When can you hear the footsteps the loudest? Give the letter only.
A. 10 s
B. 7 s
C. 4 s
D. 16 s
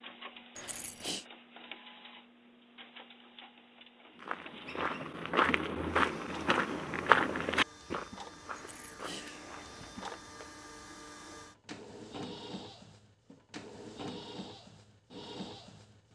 B.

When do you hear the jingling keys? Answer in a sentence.
The jingling keys can be heard from 0.6 to 1.2 s and from 8.6 to 10.5 s.